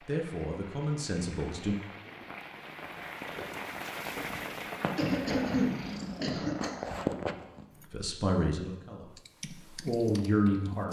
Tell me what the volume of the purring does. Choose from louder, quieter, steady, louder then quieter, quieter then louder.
louder.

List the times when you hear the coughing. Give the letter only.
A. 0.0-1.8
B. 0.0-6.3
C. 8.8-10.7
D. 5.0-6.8
D.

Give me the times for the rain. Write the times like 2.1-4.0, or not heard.
0.0-6.3.